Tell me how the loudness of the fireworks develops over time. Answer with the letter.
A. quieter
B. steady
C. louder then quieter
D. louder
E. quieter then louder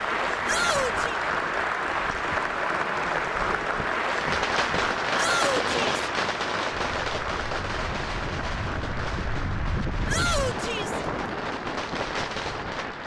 E.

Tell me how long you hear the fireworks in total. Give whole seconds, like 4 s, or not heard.
9 s.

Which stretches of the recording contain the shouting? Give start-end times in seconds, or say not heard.
0.5-1.2, 5.2-6.0, 10.1-11.0.